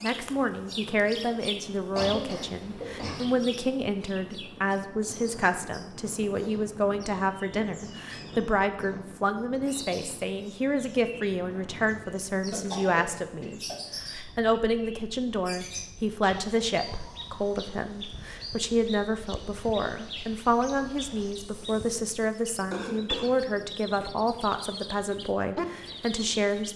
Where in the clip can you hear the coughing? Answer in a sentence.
You can hear the coughing from 1.9 to 3.3 s, from 12.5 to 13.8 s and from 22.7 to 23.4 s.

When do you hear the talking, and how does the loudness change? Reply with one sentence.
The talking can be heard from 0.0 to 26.7 s, at a steady volume.